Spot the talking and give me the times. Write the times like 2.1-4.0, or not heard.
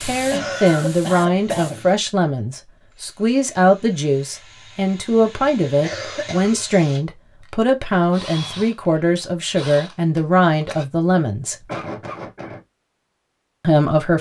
0.0-11.6, 13.6-14.1.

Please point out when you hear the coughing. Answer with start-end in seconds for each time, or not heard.
0.3-1.9, 5.8-6.8, 11.7-12.6.